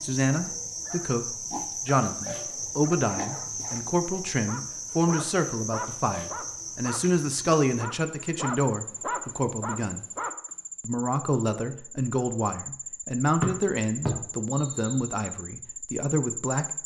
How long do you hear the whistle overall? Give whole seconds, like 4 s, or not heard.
2 s.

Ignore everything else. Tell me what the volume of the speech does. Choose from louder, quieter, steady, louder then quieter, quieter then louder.
steady.